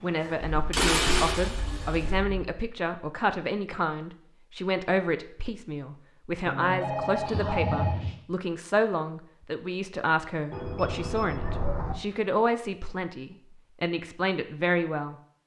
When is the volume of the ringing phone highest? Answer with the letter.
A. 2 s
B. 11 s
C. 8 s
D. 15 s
C.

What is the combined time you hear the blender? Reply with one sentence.
You can hear the blender for 2 seconds altogether.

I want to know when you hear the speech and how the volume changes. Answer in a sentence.
The speech can be heard from 0.0 to 15.2 s, at a steady volume.